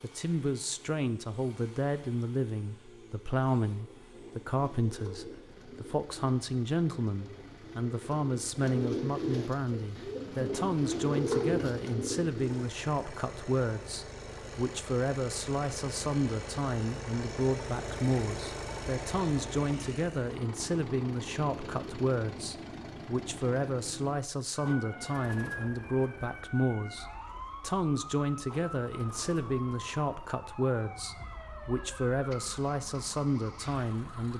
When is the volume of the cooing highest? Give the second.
11 s.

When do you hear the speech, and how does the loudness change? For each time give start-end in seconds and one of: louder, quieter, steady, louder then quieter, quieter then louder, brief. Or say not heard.
0.0-34.3 steady.